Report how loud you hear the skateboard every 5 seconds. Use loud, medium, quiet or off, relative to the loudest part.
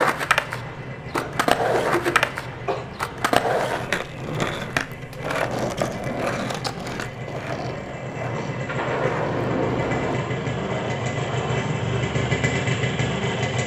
loud, medium, medium.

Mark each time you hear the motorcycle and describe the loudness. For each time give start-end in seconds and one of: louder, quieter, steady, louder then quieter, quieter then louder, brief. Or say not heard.
0.0-13.6 louder.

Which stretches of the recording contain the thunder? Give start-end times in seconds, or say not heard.
8.4-10.2.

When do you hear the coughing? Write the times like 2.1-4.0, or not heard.
1.1-2.9.